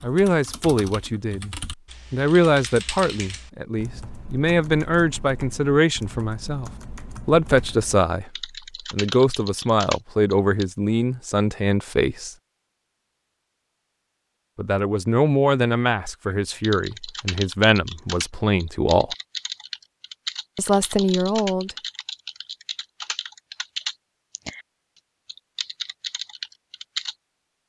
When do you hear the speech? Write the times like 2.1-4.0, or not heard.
0.0-12.3, 14.6-19.1, 20.6-21.8.